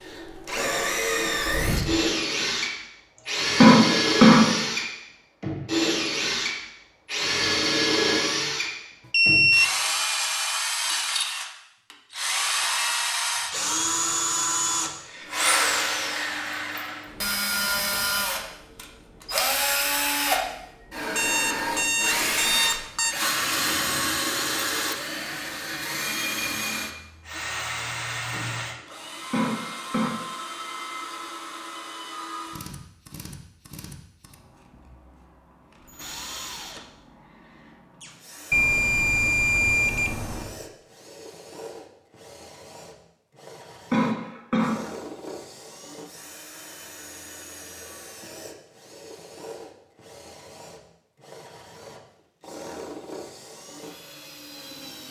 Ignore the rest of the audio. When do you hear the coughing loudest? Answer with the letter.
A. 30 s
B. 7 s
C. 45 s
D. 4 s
D.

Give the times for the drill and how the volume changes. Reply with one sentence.
You can hear the drill from 0.0 to 55.0 s, getting quieter.